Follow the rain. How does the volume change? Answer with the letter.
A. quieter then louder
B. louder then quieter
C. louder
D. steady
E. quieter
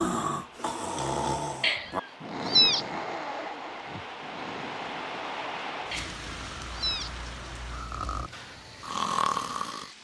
B.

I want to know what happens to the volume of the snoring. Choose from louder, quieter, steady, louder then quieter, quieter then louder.
quieter then louder.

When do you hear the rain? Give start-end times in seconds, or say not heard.
0.0-10.0.